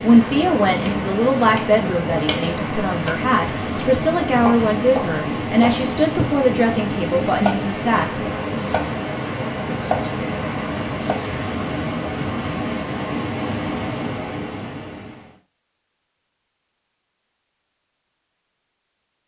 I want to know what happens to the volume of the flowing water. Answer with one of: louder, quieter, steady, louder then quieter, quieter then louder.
steady.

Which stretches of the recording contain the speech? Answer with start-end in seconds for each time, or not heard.
0.0-8.2.